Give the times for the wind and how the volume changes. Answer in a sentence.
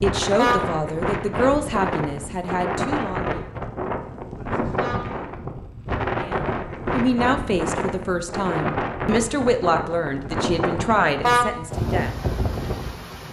The wind can be heard from 0.0 to 13.2 s, at a steady volume.